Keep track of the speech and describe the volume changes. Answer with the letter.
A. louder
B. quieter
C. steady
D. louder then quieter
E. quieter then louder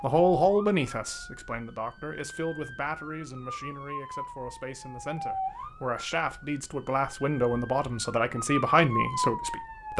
E.